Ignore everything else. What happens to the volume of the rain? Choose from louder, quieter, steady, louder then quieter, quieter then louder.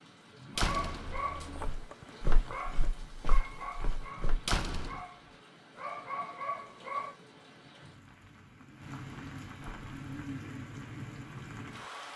louder.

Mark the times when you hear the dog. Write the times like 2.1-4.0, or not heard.
0.6-7.2.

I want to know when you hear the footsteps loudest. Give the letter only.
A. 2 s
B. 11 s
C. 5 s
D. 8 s
A.